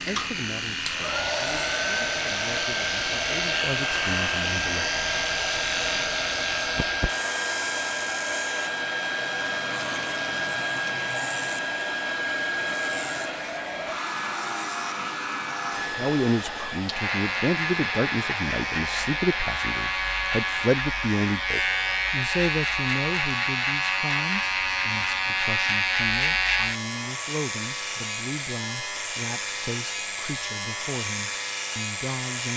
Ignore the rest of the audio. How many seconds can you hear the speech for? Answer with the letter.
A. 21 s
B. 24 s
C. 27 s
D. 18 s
A.